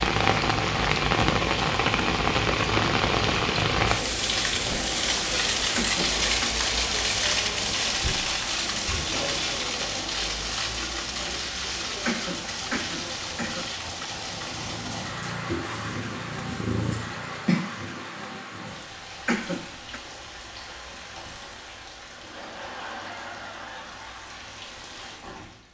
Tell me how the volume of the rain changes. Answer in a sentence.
The volume of the rain goes down.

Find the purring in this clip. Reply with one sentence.
You can hear the purring from 14.2 to 17.6 s.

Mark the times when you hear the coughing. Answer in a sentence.
You can hear the coughing from 5.8 to 6.5 s, from 12.1 to 13.7 s and from 19.2 to 20.0 s.